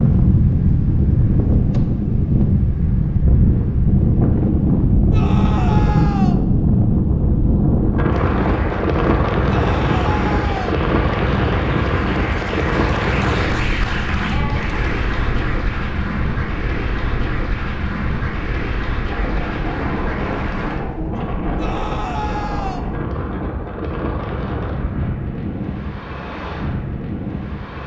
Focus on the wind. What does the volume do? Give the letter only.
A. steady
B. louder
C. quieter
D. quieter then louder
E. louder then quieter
C.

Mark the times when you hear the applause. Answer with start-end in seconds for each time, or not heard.
8.1-20.9.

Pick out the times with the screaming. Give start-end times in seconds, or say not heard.
5.1-6.4, 9.4-10.8, 21.6-22.9.